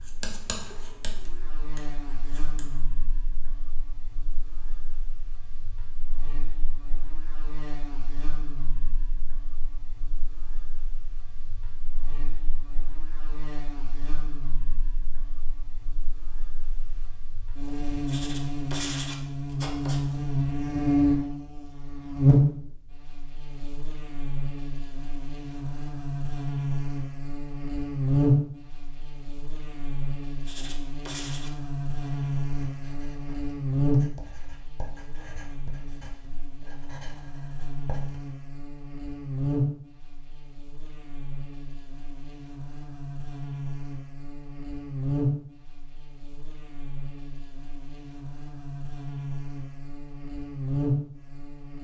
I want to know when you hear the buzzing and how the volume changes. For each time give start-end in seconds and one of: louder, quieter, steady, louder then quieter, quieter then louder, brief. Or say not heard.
0.0-51.7 louder then quieter.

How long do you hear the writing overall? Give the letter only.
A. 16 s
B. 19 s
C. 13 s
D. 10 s
C.